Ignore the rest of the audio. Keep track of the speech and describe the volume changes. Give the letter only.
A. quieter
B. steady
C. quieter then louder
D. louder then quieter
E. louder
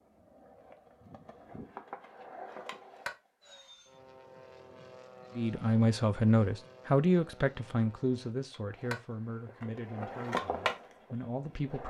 A.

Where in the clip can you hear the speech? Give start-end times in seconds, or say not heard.
5.3-11.8.